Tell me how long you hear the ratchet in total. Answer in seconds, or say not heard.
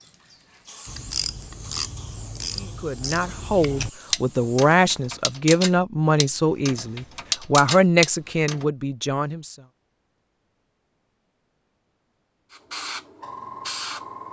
8 s.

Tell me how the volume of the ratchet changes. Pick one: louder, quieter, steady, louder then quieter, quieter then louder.
louder.